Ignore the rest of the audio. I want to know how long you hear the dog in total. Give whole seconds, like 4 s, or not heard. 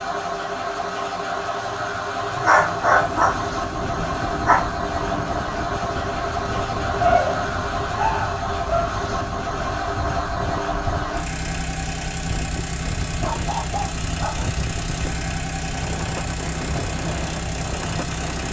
6 s.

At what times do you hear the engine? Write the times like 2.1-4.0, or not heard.
0.0-18.4.